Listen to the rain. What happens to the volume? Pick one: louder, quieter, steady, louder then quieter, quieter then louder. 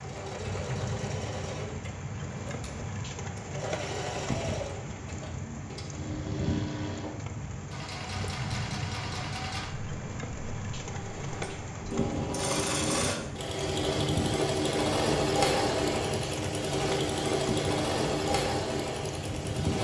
steady.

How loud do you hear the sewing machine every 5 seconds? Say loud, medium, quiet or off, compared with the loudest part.
medium, medium, loud, loud.